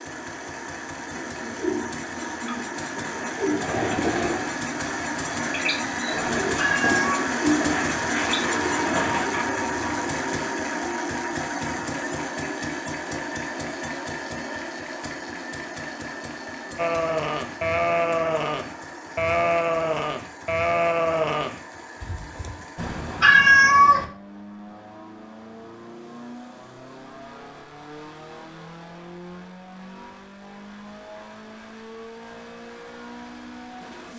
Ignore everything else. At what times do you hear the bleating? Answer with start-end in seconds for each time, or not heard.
16.8-22.6.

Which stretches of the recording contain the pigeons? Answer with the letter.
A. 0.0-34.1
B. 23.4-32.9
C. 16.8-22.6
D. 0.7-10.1
D.